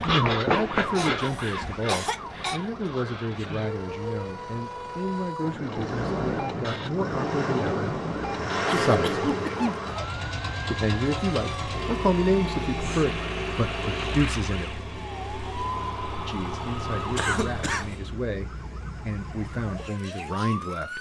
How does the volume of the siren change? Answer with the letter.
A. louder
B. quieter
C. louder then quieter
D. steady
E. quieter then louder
B.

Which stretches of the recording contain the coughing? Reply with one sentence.
You can hear the coughing from 0.9 to 2.6 s, from 8.7 to 9.8 s and from 17.1 to 17.9 s.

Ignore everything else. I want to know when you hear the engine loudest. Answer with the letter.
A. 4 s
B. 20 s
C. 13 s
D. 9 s
D.